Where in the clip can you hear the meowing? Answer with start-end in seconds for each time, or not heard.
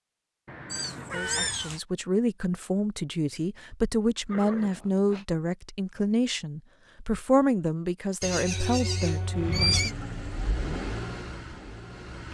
0.7-1.8.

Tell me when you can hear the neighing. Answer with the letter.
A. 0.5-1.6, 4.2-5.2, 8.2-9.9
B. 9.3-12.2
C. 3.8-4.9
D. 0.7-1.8
A.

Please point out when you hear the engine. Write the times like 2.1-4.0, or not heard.
9.3-12.2.